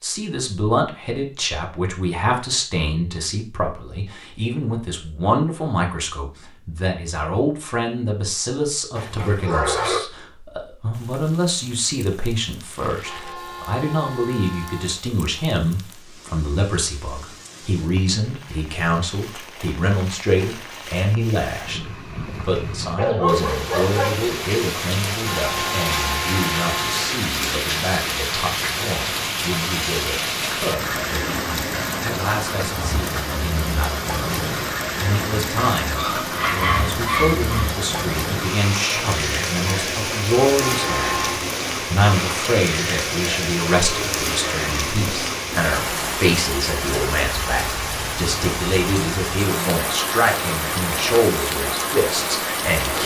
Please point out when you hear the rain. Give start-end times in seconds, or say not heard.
10.9-53.0.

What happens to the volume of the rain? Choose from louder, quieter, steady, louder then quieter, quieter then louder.
louder.